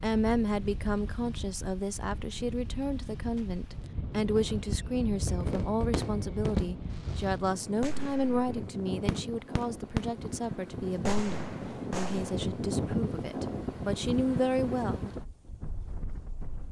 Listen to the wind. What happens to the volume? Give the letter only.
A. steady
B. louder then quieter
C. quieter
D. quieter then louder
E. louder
E.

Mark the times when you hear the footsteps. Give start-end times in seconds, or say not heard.
not heard.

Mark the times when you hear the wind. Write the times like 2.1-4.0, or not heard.
0.0-16.6.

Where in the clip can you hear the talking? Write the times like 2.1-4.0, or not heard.
0.0-15.1.